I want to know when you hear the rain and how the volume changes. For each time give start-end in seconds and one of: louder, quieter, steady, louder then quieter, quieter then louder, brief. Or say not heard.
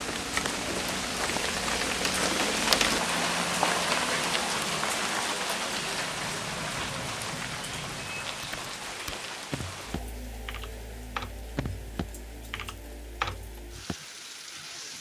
0.0-14.9 quieter.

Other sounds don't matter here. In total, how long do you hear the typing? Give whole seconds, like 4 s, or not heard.
6 s.